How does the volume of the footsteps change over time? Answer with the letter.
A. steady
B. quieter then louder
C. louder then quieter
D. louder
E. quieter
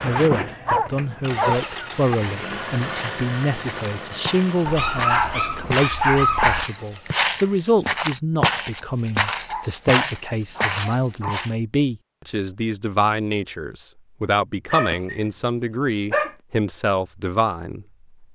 D.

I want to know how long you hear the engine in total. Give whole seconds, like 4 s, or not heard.
8 s.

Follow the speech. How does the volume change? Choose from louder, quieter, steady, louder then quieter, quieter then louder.
steady.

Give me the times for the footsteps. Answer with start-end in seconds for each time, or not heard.
0.9-11.5.